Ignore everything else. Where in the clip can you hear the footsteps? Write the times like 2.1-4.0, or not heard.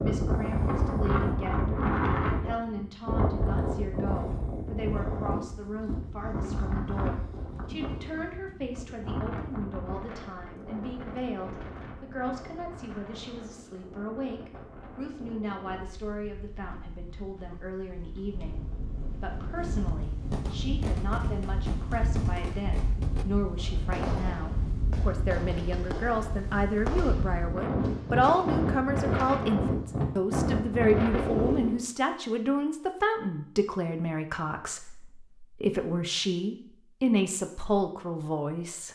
not heard.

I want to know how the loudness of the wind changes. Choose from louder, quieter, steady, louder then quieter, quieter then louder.
quieter then louder.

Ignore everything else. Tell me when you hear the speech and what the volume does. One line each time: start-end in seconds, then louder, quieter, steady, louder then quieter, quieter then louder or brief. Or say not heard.
0.0-38.8 louder.